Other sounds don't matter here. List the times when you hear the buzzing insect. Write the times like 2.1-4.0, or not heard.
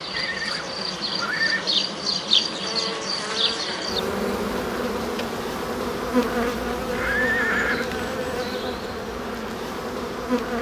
0.0-10.5.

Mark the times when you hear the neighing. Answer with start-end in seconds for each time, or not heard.
0.1-1.9, 6.9-7.9.